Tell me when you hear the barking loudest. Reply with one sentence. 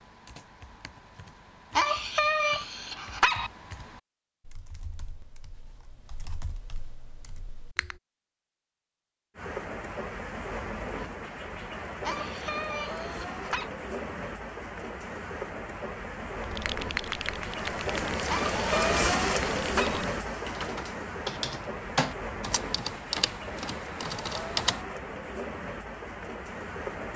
The loudest moment of the barking is at 2 seconds.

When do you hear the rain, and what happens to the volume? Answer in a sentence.
You can hear the rain from 9.3 to 27.1 s, getting louder then quieter.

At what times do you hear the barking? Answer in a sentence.
You can hear the barking from 1.8 to 3.5 s, from 12.1 to 13.7 s and from 18.2 to 20.1 s.